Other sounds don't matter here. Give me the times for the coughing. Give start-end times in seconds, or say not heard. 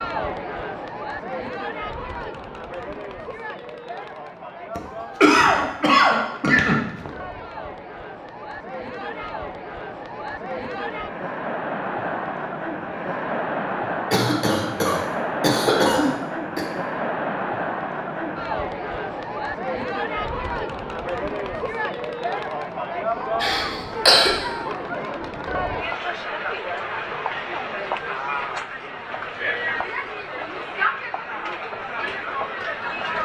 4.8-7.1, 14.1-16.7, 23.4-24.4.